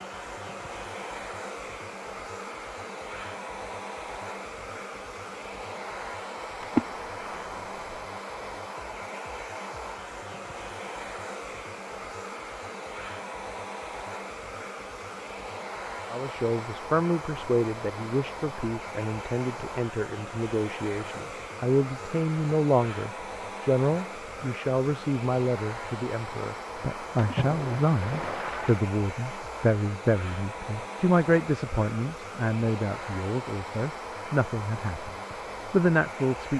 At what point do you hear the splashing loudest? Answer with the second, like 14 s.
7 s.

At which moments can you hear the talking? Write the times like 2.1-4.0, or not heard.
16.1-36.5.